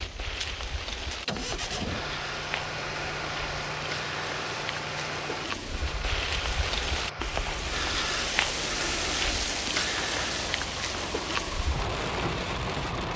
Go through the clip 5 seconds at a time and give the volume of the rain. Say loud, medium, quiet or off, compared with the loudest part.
medium, loud, loud.